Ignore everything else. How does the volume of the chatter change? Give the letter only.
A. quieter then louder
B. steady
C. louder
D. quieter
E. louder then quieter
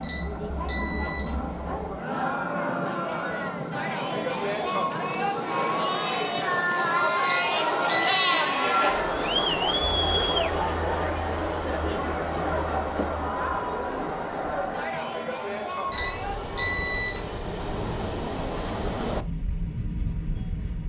E.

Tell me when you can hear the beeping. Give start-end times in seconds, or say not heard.
0.0-1.4, 7.2-8.5, 15.9-17.2.